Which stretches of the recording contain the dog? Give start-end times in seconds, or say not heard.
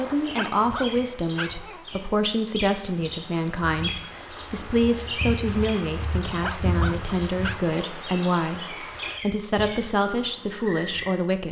0.2-2.0, 6.3-7.7.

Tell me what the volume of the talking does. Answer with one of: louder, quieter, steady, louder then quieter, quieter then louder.
steady.